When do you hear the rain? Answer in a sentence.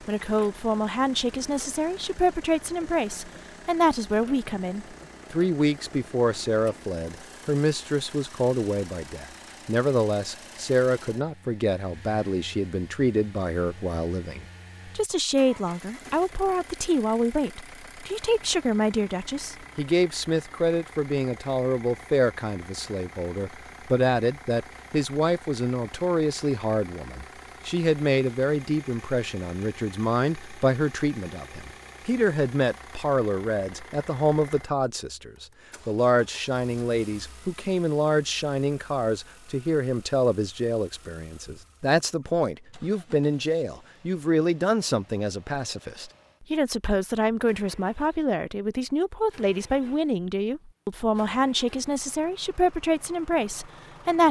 You can't hear the rain here.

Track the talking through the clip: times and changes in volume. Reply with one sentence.
You can hear the talking from 0.1 to 54.2 s, at a steady volume.